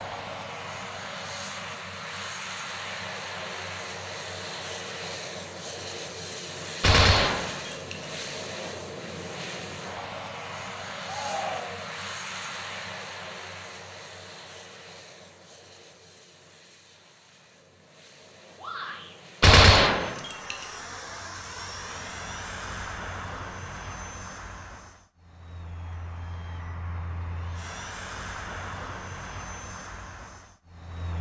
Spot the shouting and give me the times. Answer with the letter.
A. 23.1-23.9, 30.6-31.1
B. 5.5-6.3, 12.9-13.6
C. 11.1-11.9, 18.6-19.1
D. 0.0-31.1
C.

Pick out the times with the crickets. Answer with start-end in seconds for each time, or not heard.
not heard.